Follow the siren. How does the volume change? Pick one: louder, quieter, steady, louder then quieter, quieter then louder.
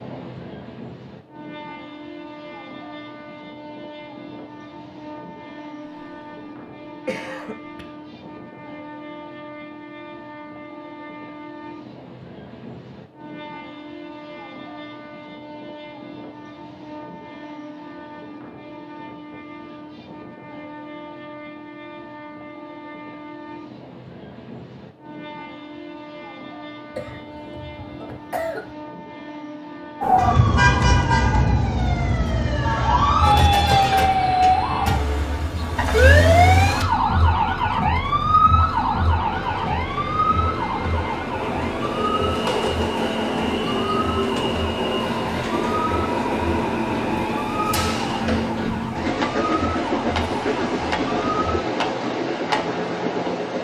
quieter.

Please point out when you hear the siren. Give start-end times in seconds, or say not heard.
30.0-51.6.